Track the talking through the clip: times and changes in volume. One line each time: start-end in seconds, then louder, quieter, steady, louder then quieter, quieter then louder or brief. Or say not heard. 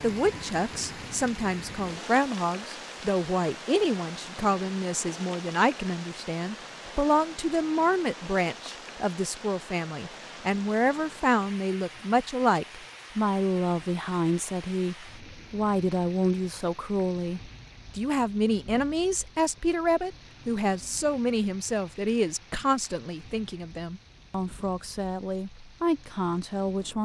0.0-27.0 steady.